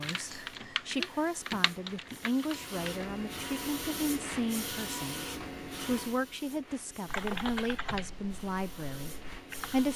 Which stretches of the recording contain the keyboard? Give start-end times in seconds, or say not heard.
0.0-3.1, 7.0-9.9.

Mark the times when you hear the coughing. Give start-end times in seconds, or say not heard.
not heard.